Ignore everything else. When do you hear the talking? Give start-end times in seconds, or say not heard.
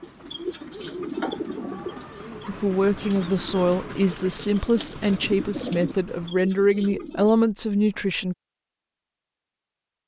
2.5-8.3.